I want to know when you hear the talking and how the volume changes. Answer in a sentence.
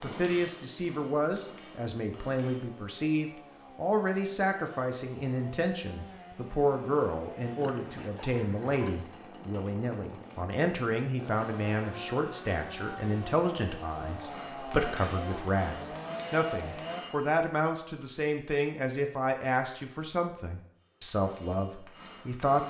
The talking can be heard from 0.0 to 22.6 s, at a steady volume.